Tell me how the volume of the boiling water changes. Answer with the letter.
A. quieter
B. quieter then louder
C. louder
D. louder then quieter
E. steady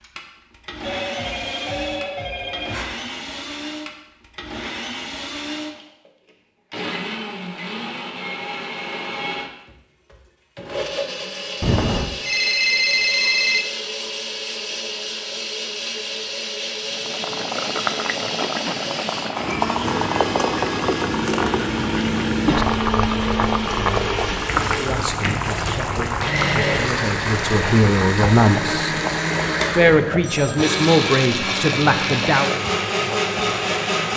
A.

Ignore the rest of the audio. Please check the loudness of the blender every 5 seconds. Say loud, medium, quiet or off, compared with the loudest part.
medium, medium, medium, medium, loud, loud, loud.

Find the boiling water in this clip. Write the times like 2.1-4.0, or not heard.
16.8-34.1.